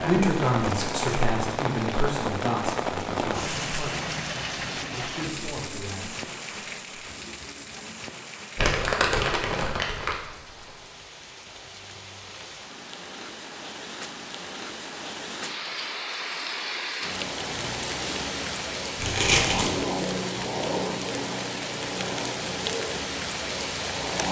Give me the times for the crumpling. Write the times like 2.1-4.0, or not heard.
0.6-1.1, 8.6-10.2, 18.9-19.8.